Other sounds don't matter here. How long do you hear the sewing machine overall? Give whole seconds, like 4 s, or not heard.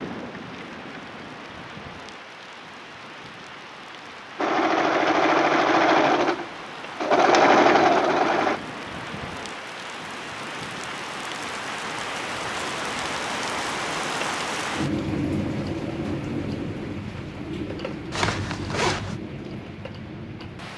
4 s.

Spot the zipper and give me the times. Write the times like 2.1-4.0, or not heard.
18.1-19.2.